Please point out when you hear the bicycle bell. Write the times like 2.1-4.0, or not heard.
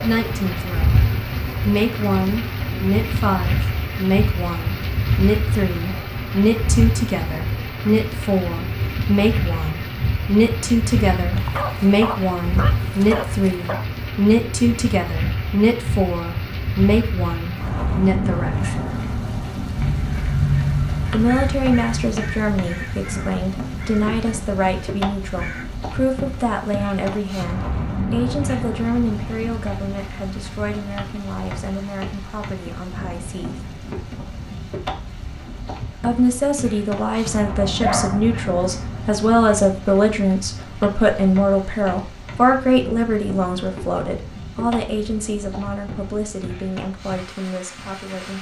not heard.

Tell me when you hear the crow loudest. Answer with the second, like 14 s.
21 s.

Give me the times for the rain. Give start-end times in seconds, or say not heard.
0.0-48.3.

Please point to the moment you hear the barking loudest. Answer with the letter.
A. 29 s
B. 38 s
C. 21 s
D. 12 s
B.